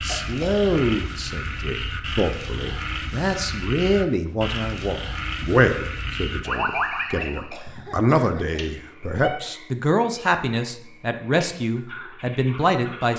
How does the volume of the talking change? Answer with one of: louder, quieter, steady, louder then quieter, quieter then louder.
steady.